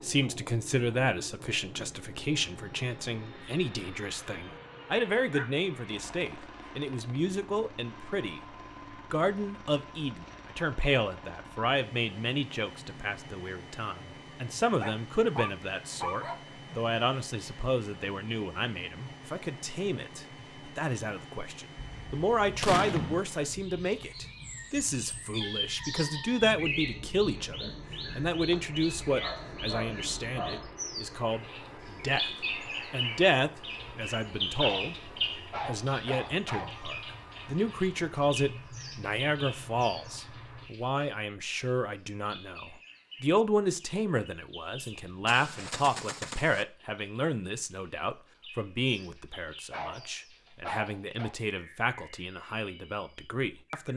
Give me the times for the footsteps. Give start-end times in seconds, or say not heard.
not heard.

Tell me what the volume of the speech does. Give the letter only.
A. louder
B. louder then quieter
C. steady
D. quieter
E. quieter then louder
C.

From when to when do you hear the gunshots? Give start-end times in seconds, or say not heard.
21.8-23.2, 44.8-46.6.